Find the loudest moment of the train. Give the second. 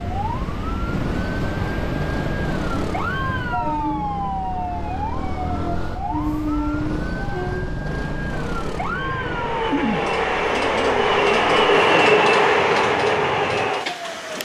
12 s.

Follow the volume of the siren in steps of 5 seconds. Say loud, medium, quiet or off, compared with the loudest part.
loud, loud, medium.